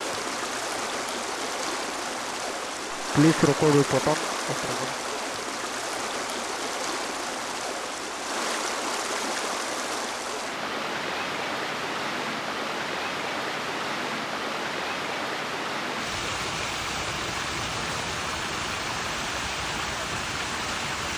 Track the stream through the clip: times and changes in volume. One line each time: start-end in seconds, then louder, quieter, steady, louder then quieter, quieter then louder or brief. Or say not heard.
0.0-21.1 steady.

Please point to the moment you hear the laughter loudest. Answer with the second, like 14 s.
3 s.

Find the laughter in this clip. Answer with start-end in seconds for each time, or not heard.
3.0-5.0.